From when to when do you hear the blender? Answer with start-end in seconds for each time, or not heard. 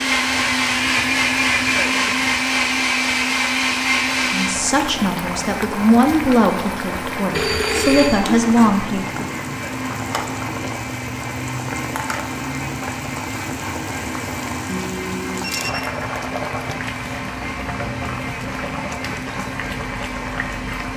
0.0-20.9.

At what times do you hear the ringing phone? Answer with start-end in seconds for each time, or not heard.
0.3-1.8, 7.3-8.2, 14.7-15.9.